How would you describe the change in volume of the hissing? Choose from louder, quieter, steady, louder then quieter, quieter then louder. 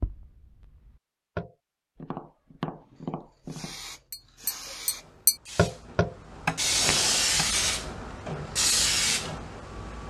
louder.